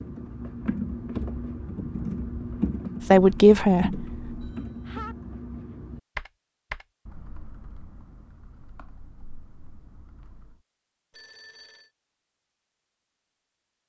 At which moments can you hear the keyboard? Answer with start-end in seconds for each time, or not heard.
0.0-10.6.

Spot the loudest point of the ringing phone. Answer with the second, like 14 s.
5 s.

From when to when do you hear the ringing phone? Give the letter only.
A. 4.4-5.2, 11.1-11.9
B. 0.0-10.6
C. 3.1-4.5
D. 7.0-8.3
A.